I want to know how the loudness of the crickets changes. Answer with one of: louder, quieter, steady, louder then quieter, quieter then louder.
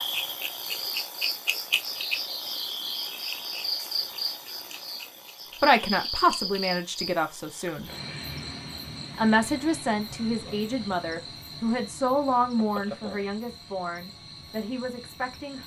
quieter.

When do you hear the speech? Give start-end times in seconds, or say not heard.
5.6-7.9, 9.2-15.6.